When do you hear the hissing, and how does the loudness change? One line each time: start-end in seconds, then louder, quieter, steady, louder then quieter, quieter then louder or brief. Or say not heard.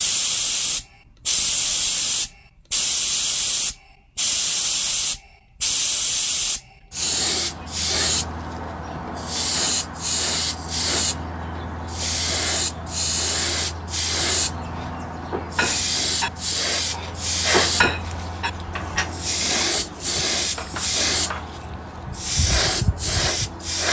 0.0-23.8 steady.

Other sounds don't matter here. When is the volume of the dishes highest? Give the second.
18 s.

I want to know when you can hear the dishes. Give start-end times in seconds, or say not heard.
14.7-21.4.